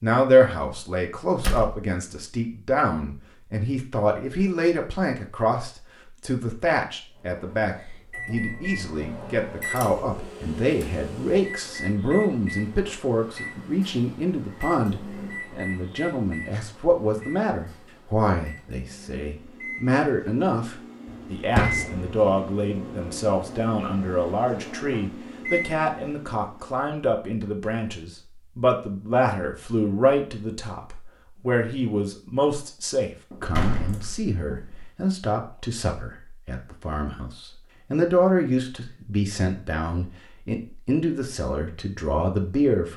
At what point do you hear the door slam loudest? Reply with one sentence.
The volume of the door slam peaks at 22 seconds.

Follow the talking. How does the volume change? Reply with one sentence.
The volume of the talking stays about the same.